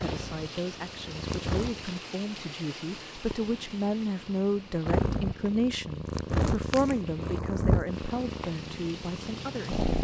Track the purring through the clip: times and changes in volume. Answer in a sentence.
The purring can be heard briefly from 0.0 to 2.0 s; and from 3.4 to 10.0 s, getting louder then quieter.